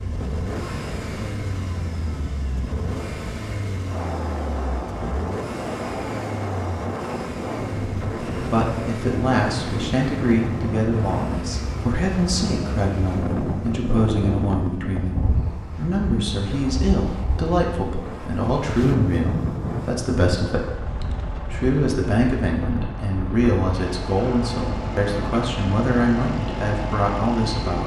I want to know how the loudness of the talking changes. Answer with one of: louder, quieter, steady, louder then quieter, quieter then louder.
steady.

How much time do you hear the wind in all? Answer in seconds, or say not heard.
28 s.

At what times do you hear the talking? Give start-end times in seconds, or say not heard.
8.3-27.8.